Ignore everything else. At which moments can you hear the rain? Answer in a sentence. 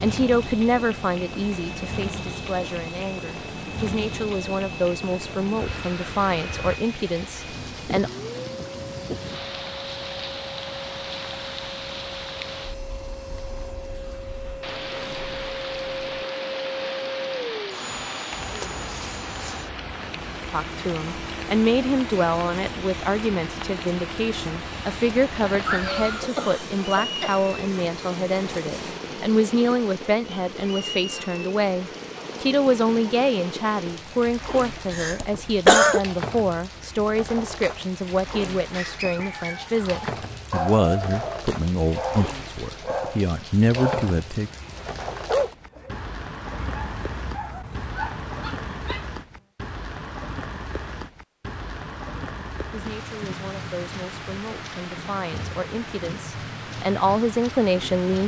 You can hear the rain from 0.0 to 58.2 s.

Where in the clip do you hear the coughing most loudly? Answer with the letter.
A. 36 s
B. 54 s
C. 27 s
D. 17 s
A.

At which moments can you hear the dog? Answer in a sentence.
The dog can be heard from 38.5 to 49.1 s.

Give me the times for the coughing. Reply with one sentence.
You can hear the coughing from 25.5 to 27.3 s and from 34.9 to 36.0 s.